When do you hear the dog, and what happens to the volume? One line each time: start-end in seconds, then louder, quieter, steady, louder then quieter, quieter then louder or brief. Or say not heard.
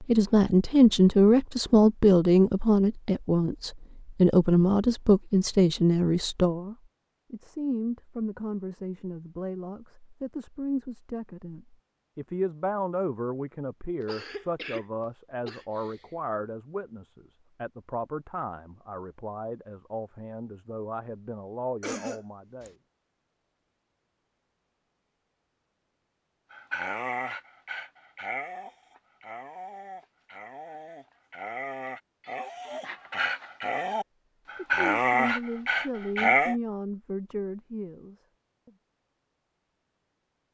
26.5-36.5 quieter then louder.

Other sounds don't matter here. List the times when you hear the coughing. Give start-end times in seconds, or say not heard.
14.1-14.8, 15.4-15.9, 21.8-22.7.